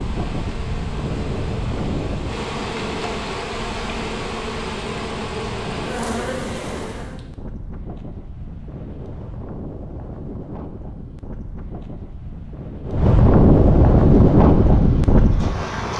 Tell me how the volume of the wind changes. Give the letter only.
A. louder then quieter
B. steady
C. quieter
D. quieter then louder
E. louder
D.